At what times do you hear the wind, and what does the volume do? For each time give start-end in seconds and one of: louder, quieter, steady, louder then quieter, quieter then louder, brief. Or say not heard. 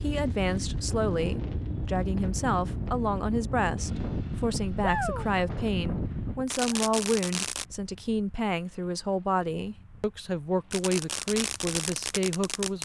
0.0-12.7 quieter.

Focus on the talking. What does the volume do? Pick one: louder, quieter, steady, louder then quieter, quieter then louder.
steady.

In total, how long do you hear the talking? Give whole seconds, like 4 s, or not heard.
13 s.